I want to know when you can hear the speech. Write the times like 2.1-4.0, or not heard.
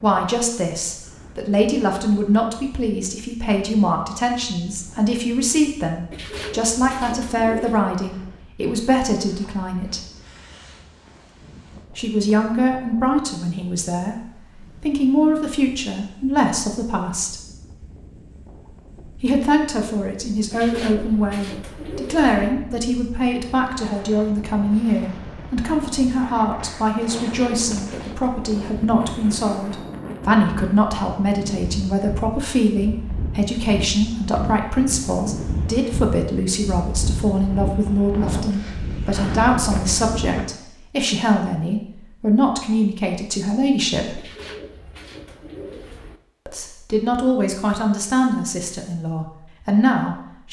0.0-10.0, 11.9-14.2, 14.8-17.4, 19.1-44.2, 46.5-50.4.